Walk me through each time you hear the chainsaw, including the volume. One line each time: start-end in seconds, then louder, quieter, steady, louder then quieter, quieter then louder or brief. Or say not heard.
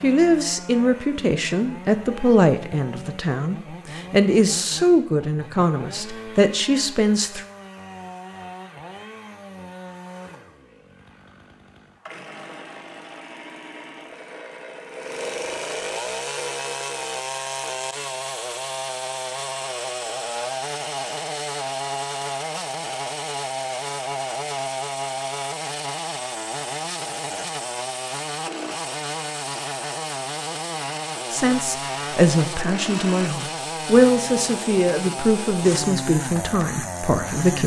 0.0-37.6 louder.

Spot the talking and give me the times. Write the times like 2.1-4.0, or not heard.
0.0-7.5, 31.3-37.6.